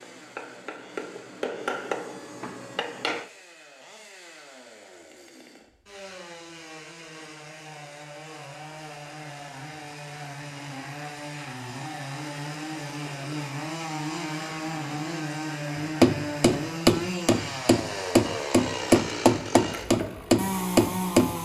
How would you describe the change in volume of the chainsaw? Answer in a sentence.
The loudness of the chainsaw goes up.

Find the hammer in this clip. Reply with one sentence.
The hammer can be heard from 0.0 to 3.2 s and from 15.8 to 21.4 s.